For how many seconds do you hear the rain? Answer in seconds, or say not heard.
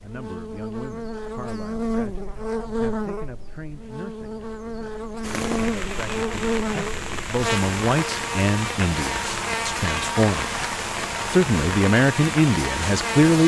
8 s.